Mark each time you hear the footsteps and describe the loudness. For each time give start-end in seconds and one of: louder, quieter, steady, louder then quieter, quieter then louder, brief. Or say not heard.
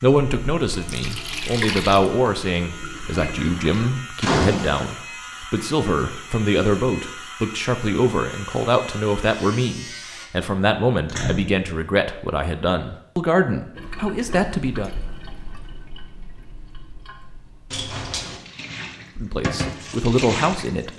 not heard.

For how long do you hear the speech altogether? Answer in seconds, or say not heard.
17 s.